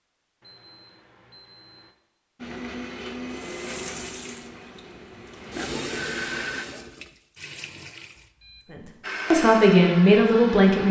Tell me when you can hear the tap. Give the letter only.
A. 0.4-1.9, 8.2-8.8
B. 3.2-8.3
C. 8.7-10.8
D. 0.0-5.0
B.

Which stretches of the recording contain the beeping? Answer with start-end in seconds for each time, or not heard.
0.4-1.9, 8.2-8.8.